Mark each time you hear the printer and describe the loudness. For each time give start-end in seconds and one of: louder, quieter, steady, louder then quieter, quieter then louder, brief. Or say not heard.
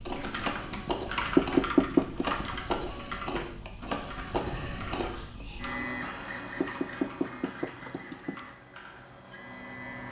0.0-10.0 quieter.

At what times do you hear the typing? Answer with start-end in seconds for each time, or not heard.
0.1-9.2.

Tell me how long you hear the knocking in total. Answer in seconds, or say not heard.
3 s.